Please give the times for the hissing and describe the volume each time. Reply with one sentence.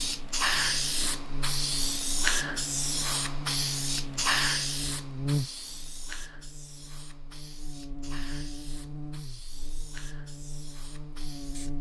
The hissing can be heard from 0.0 to 11.7 s, getting quieter.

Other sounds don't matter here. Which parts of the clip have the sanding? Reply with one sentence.
You can't hear the sanding here.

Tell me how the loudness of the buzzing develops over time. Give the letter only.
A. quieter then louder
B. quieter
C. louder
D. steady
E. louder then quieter
E.